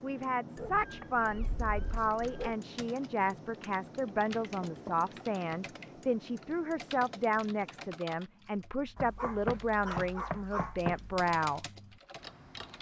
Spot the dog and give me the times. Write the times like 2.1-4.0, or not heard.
0.6-2.5, 8.9-10.8.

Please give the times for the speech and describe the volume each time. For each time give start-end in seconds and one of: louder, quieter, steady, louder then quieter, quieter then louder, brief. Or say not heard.
0.0-11.7 steady.